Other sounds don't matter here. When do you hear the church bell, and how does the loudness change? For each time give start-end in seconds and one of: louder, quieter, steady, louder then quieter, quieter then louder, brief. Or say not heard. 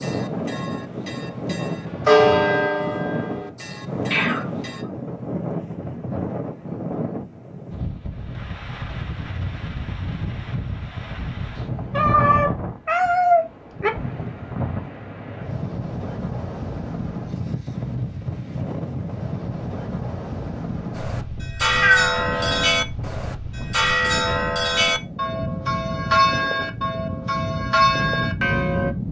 0.0-4.8 louder then quieter
20.9-28.9 steady.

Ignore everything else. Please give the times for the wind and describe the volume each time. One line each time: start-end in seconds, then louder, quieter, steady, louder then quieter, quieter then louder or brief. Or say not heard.
0.0-29.0 steady.